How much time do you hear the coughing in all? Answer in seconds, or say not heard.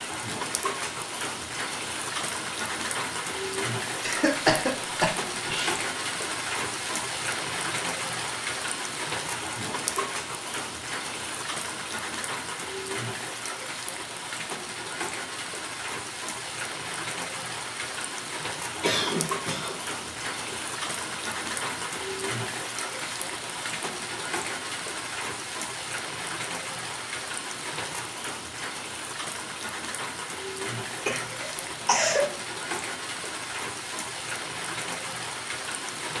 5 s.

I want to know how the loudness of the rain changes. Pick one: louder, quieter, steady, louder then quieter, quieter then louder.
steady.